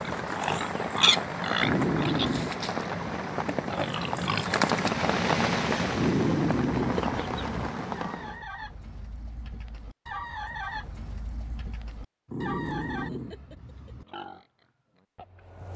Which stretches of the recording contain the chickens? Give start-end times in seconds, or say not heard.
7.0-13.1.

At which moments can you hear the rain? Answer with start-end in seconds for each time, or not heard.
0.0-8.4.